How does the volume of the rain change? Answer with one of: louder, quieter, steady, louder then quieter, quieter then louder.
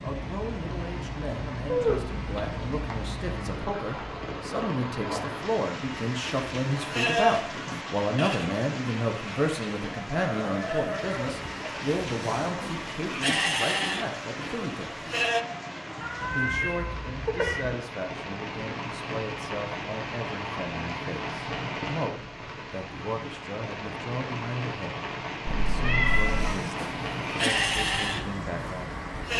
steady.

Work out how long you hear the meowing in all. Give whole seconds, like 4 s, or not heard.
4 s.